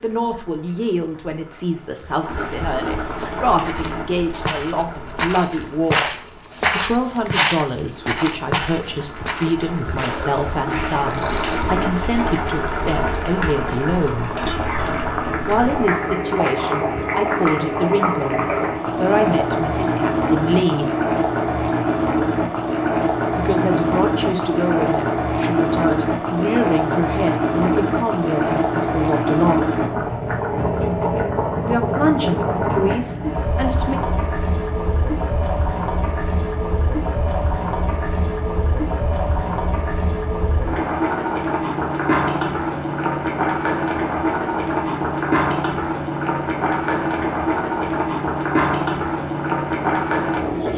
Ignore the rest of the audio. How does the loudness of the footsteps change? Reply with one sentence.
The volume of the footsteps goes up, then down.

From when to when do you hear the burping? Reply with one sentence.
The burping can be heard from 9.9 to 11.8 s.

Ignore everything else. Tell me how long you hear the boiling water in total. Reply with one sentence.
The boiling water can be heard for 51 seconds in total.